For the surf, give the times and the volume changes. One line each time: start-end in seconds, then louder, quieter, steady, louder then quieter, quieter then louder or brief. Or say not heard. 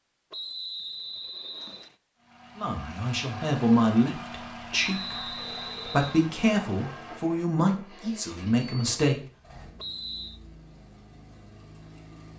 not heard.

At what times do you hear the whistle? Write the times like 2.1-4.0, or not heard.
0.3-1.9, 4.8-6.3, 9.8-10.4.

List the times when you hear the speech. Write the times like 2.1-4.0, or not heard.
2.5-9.2.